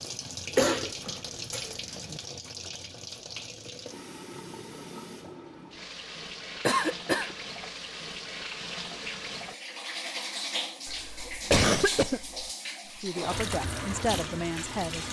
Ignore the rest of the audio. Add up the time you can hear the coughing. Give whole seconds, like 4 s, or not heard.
4 s.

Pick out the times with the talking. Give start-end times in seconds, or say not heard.
12.8-15.0.